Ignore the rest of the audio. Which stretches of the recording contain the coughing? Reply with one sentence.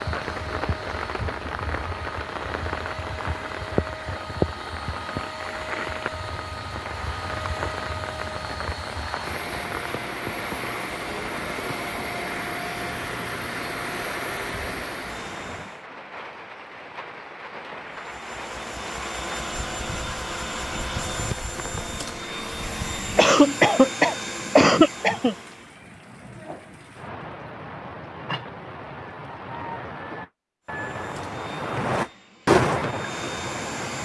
You can hear the coughing from 23.1 to 25.4 s.